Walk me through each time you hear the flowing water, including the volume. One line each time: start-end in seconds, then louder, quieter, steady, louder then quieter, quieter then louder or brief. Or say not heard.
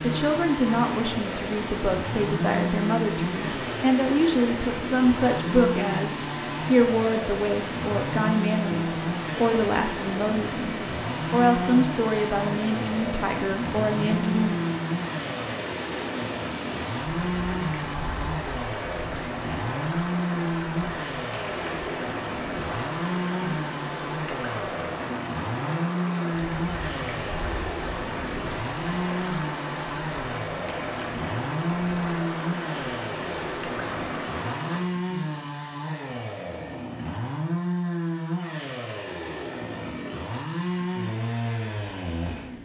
0.0-34.9 steady.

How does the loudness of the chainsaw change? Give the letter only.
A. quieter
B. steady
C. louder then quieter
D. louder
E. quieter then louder
B.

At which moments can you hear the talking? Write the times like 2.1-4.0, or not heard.
0.0-14.6.